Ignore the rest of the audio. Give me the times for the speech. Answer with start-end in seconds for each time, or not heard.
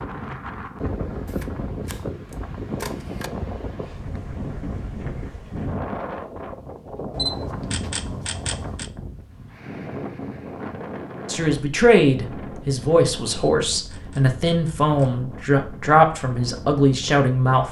11.2-17.6.